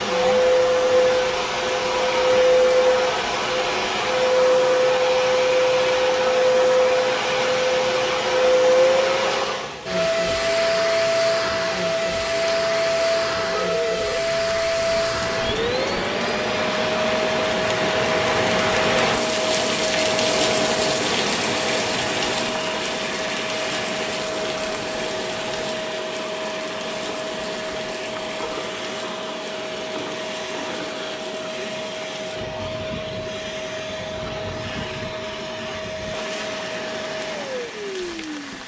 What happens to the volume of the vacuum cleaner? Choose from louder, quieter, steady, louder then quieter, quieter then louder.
quieter.